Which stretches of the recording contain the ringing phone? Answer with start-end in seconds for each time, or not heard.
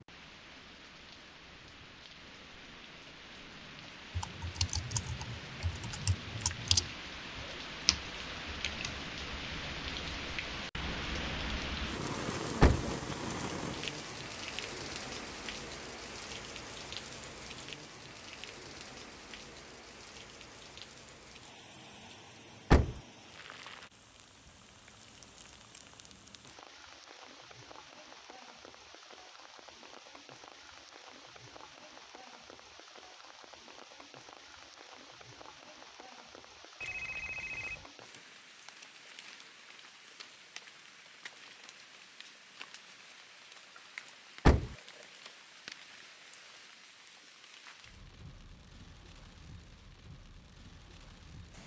36.8-37.9.